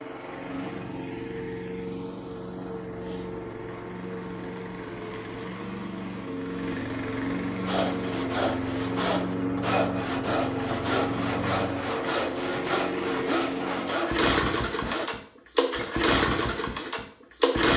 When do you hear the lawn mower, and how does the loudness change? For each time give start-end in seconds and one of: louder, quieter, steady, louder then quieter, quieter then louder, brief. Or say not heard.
0.0-17.7 louder.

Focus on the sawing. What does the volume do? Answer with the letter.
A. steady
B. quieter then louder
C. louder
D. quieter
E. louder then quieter
A.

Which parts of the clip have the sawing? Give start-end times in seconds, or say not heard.
7.6-15.1.